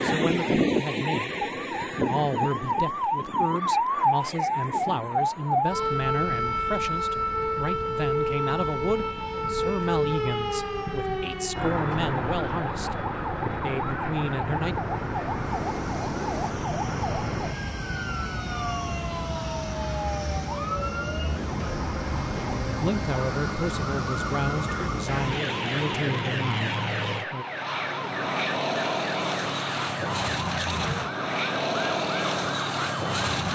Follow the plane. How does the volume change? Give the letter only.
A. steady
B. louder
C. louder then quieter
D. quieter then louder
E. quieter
B.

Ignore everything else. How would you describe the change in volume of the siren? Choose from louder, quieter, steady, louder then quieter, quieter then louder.
quieter.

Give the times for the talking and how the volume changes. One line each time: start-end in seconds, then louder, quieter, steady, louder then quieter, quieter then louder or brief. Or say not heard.
0.0-14.8 steady
22.8-27.4 steady.